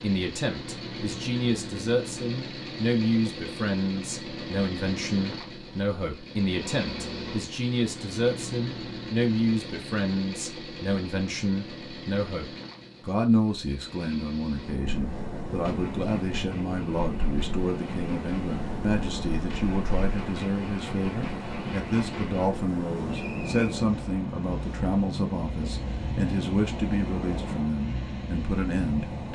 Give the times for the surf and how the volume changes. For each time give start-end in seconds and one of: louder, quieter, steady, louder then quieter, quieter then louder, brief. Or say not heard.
14.4-29.3 steady.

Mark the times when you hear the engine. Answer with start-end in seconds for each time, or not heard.
0.0-29.3.